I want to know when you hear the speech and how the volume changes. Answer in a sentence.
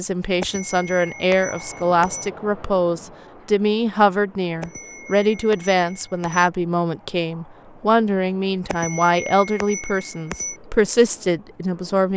You can hear the speech from 0.0 to 12.1 s, at a steady volume.